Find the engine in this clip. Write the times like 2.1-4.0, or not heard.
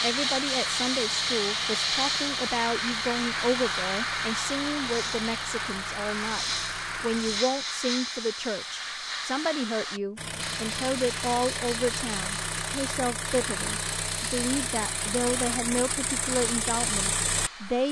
0.0-7.5, 10.2-17.8.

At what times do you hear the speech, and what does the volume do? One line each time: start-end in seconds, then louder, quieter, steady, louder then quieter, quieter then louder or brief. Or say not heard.
0.0-17.8 steady.